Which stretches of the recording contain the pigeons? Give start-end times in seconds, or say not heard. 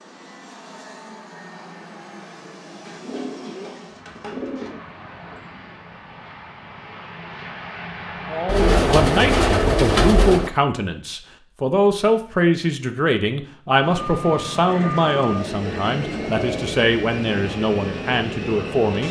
2.8-4.8, 8.4-10.5, 14.7-16.8.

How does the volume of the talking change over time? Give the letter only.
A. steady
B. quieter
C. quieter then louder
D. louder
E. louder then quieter
A.